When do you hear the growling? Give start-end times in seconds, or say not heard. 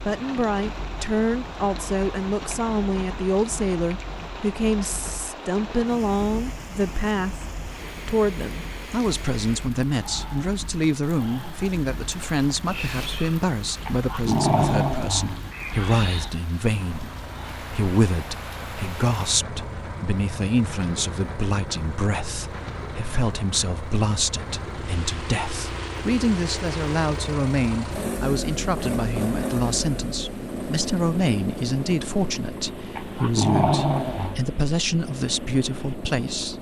13.8-15.5, 33.0-34.4.